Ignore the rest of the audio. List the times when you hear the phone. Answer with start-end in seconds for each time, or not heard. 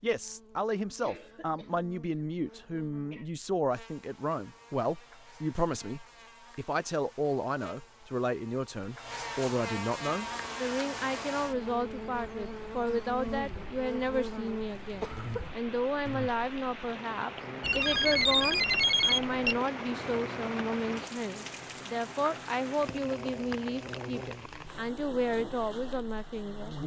17.6-19.6.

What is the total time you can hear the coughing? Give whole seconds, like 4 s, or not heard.
3 s.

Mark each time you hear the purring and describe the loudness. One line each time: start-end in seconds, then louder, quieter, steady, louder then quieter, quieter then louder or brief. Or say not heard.
not heard.